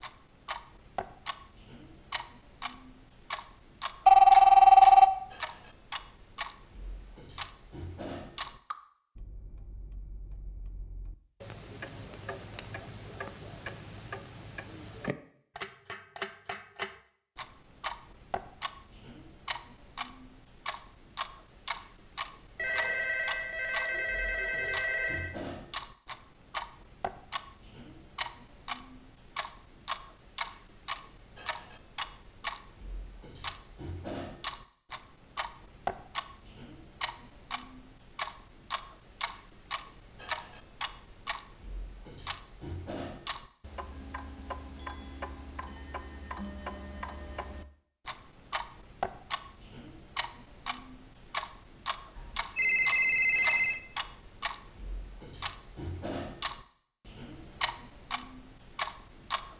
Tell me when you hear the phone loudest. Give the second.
5 s.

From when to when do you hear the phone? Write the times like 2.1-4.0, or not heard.
4.0-5.1, 22.6-25.4, 52.1-53.8.